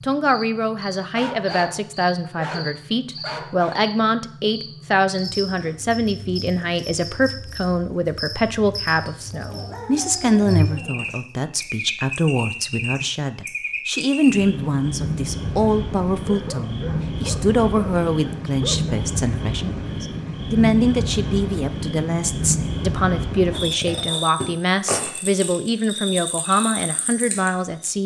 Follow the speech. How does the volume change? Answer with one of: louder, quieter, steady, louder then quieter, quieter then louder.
steady.